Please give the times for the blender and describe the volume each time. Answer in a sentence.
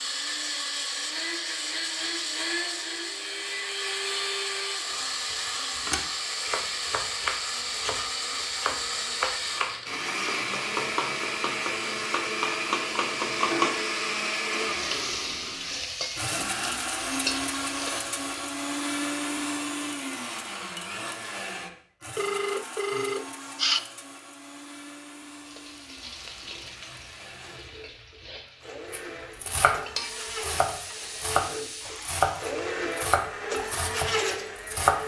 The blender can be heard from 0.0 to 35.0 s, getting quieter then louder.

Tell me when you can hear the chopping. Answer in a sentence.
You can hear the chopping from 4.9 to 13.7 s, from 28.9 to 29.8 s and from 30.4 to 35.0 s.